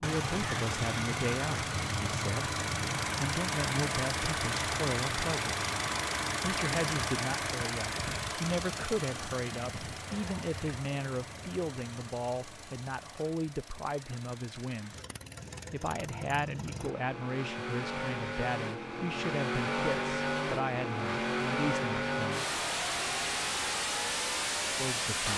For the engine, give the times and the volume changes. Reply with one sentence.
You can hear the engine from 0.0 to 25.3 s, getting quieter then louder.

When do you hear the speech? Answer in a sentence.
You can hear the speech from 0.0 to 5.7 s, from 6.4 to 14.9 s, from 15.7 to 22.4 s and from 24.8 to 25.3 s.